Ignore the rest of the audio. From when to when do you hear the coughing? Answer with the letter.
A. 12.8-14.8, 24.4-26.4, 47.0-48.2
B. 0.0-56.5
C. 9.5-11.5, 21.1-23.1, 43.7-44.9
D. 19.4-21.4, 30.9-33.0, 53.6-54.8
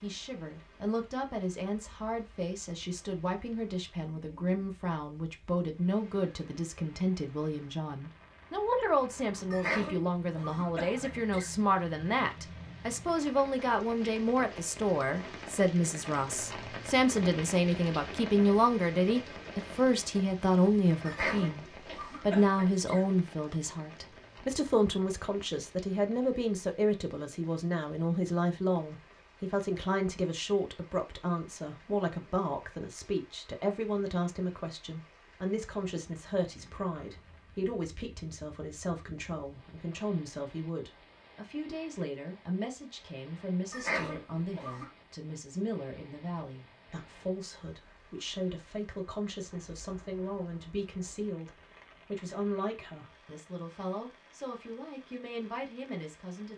C.